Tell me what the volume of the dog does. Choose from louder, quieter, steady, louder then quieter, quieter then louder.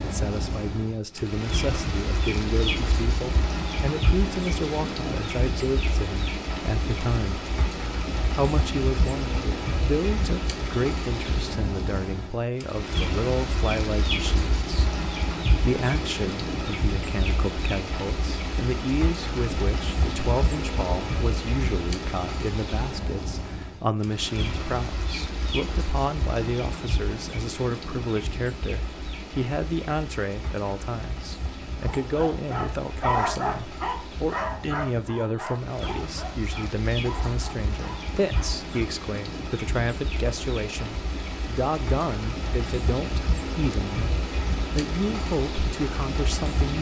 quieter.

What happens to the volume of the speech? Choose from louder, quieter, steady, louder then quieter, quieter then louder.
steady.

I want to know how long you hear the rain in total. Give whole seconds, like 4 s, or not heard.
47 s.